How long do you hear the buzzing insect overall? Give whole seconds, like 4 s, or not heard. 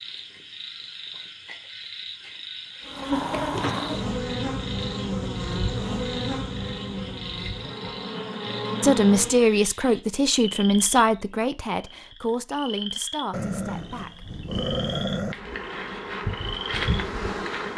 9 s.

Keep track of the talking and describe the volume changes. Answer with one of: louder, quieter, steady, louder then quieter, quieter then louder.
quieter.